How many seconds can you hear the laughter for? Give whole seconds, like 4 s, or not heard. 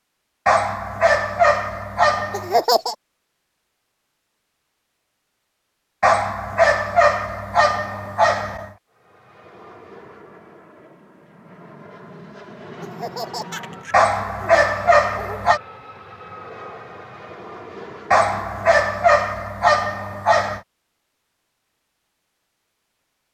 3 s.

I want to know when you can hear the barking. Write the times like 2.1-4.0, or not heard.
0.5-2.6, 6.0-8.7, 13.9-15.6, 18.1-20.6.